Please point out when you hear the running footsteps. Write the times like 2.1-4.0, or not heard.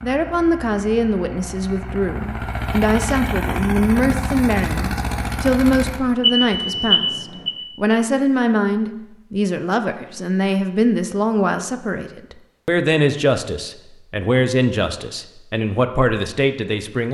not heard.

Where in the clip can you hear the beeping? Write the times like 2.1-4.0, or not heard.
6.2-7.5.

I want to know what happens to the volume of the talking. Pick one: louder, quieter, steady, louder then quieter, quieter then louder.
steady.